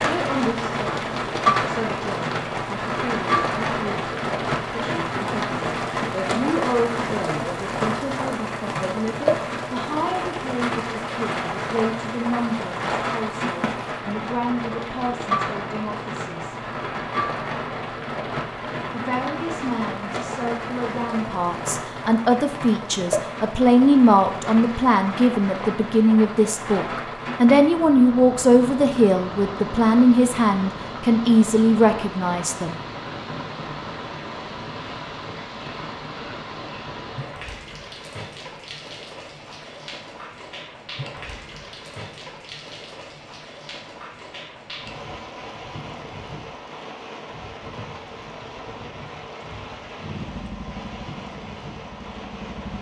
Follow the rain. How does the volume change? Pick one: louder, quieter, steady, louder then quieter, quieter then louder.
quieter.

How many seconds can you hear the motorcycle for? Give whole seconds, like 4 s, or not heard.
3 s.